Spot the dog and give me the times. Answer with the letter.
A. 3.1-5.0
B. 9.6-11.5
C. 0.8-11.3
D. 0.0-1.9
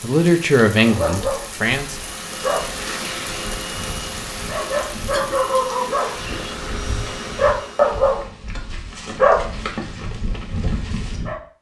C.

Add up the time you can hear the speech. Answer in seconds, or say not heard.
2 s.